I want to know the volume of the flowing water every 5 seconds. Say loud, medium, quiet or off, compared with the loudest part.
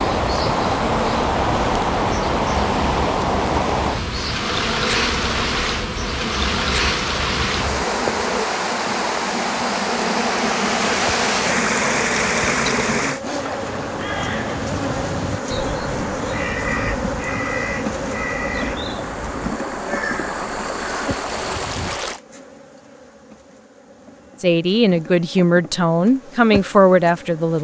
loud, loud, loud, medium, medium, off.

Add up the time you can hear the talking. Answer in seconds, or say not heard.
3 s.